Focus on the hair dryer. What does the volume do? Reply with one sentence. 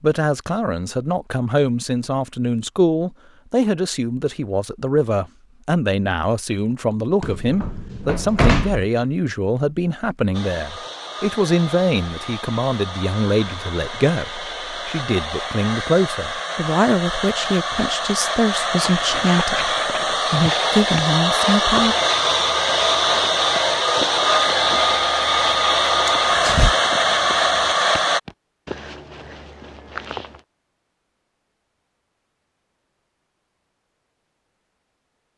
The volume of the hair dryer goes up.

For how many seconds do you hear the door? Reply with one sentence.
The door can be heard for 2 seconds in total.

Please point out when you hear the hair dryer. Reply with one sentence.
The hair dryer can be heard from 10.3 to 28.2 s.